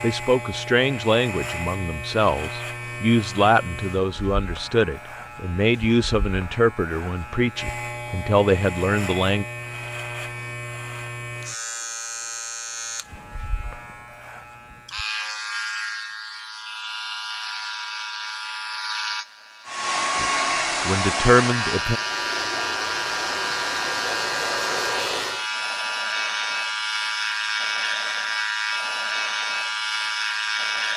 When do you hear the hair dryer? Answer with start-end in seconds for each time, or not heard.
19.6-25.4.